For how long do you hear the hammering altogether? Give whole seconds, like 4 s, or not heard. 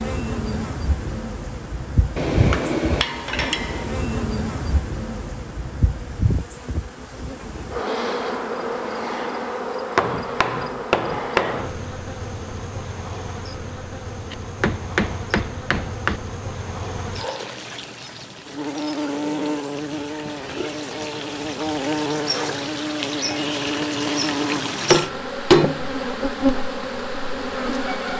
7 s.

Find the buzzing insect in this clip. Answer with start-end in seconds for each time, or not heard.
0.0-28.1.